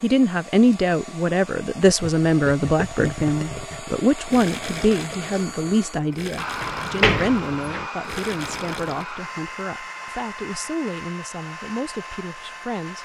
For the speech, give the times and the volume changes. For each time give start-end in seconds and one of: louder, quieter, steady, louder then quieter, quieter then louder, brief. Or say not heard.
0.0-13.0 quieter.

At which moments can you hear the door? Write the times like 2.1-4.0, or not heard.
6.6-7.9.